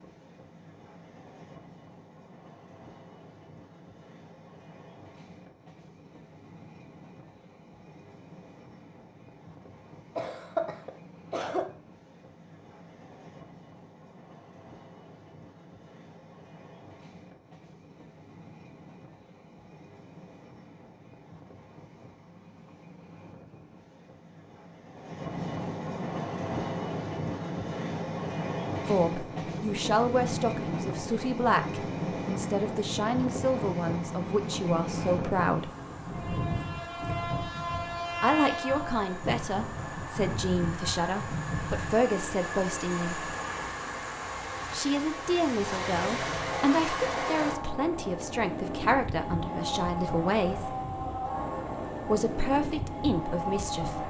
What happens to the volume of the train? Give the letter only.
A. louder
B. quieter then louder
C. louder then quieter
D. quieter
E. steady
A.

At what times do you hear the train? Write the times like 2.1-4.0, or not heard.
0.0-54.0.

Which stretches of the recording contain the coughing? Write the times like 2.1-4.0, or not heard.
10.2-11.7.